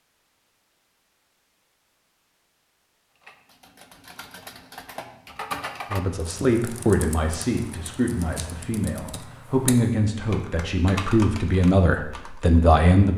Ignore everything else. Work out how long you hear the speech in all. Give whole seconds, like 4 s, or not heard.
7 s.